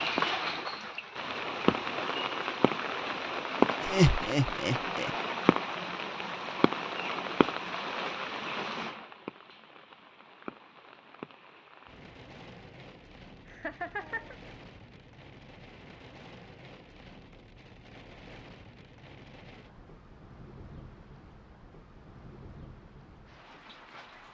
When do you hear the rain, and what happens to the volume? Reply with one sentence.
You can hear the rain from 0.0 to 24.2 s, getting quieter.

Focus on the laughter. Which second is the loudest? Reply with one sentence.
The volume of the laughter peaks at 4 seconds.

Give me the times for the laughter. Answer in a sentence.
You can hear the laughter from 3.8 to 5.1 s and from 13.4 to 14.3 s.